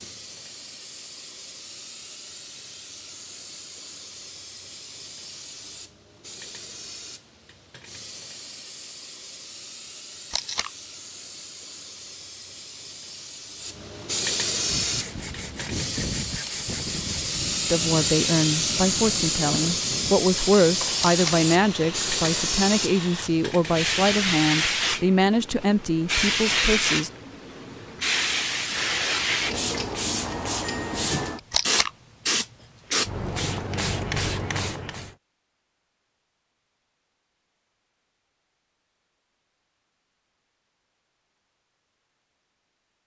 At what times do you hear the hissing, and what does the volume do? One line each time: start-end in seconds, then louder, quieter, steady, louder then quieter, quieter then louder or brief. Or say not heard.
0.0-35.1 louder.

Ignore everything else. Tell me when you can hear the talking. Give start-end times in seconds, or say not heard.
17.7-27.1.